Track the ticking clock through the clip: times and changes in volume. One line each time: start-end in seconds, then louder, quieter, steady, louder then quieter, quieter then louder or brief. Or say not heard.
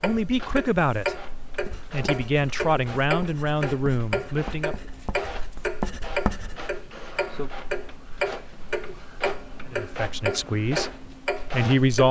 0.0-12.0 steady.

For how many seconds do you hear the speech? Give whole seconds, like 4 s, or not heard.
6 s.